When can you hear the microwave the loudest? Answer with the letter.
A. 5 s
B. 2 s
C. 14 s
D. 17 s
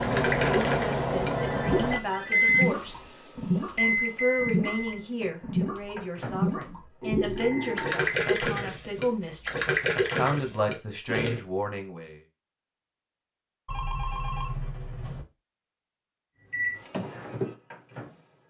B.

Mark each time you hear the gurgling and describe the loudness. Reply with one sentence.
The gurgling can be heard from 0.0 to 11.4 s, at a steady volume.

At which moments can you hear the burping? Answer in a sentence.
The burping can be heard from 7.0 to 8.1 s.